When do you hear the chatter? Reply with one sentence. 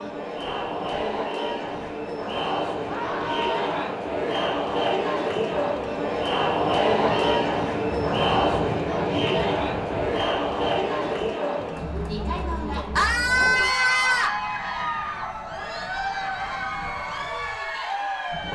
The chatter can be heard from 0.0 to 18.5 s.